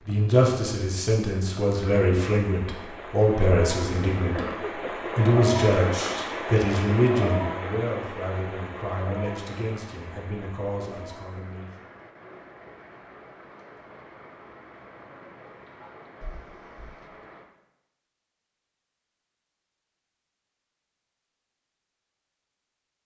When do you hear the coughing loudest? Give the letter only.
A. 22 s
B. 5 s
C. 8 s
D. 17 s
B.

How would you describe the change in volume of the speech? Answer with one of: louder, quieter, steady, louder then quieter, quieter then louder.
quieter.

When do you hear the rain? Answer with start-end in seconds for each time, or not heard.
0.0-17.5.